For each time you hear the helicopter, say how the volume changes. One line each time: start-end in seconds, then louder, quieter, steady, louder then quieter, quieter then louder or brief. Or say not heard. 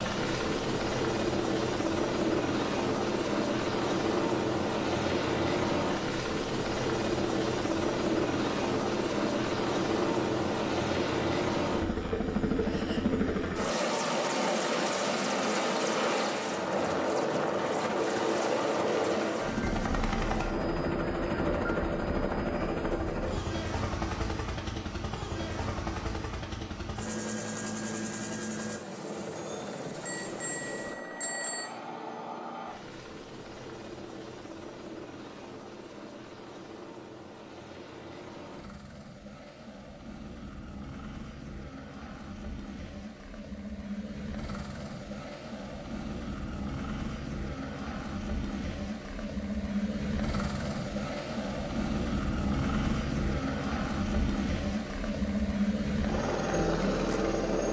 0.0-57.6 quieter then louder.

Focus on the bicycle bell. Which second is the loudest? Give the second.
31 s.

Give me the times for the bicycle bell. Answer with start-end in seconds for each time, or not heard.
29.4-31.7.